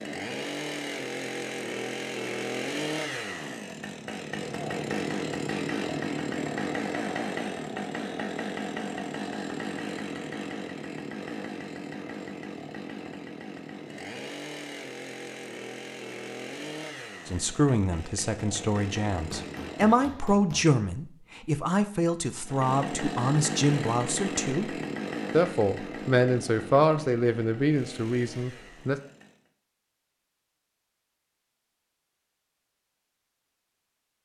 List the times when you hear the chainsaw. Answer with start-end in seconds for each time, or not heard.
0.0-20.1, 22.4-29.5.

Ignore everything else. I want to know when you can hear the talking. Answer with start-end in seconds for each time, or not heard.
17.2-29.0.